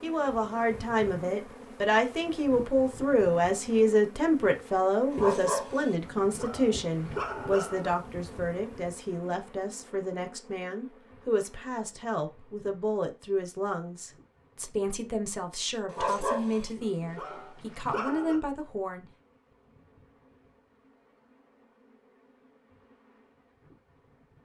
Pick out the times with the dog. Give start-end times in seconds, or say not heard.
5.1-8.0, 15.8-18.4.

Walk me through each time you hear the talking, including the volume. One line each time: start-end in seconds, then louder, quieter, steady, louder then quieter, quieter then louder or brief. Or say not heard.
0.0-19.1 quieter.